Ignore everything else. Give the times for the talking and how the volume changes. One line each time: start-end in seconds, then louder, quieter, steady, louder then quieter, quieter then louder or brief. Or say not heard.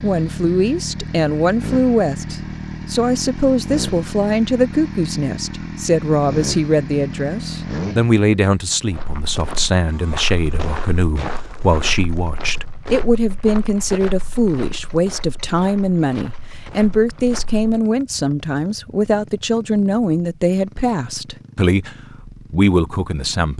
0.0-23.5 steady.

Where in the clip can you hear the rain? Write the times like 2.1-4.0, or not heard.
not heard.